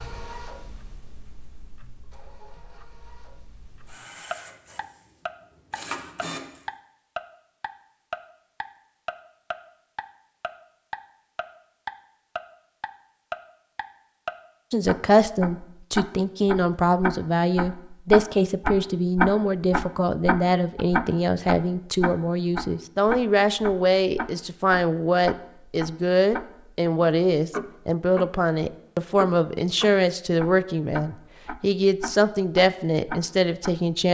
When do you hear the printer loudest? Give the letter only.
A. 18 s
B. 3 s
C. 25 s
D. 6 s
D.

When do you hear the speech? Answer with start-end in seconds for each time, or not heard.
14.7-34.0.